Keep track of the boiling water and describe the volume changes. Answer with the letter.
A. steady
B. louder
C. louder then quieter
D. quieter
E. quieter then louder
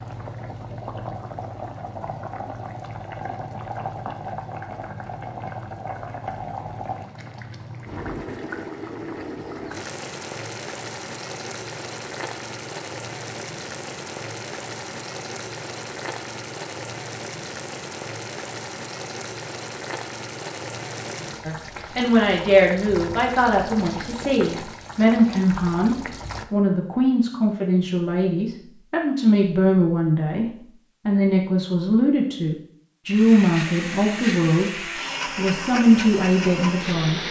A.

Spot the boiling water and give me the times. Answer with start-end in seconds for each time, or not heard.
0.0-26.4.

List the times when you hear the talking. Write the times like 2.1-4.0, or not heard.
21.4-30.4, 31.1-37.2.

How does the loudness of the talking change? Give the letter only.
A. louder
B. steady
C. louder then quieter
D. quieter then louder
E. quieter
B.